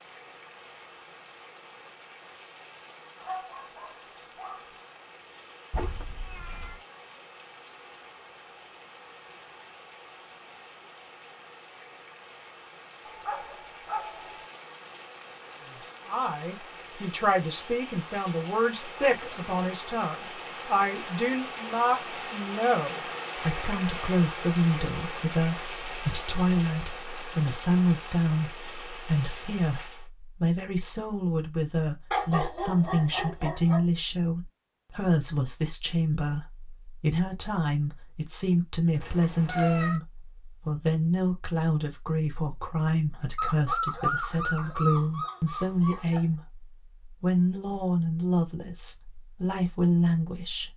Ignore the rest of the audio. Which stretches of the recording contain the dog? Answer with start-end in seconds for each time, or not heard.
3.2-4.8, 13.1-14.4, 32.1-33.9, 43.4-46.2.